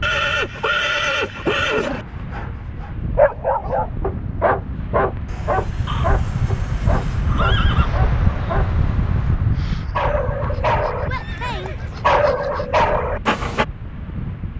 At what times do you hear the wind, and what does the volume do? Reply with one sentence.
You can hear the wind from 0.0 to 14.5 s, getting louder then quieter.